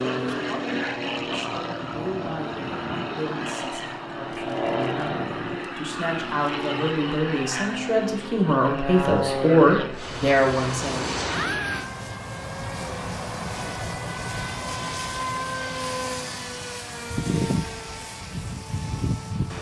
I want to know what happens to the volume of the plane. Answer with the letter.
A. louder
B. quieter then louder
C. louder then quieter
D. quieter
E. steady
E.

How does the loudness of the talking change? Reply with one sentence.
The volume of the talking goes up.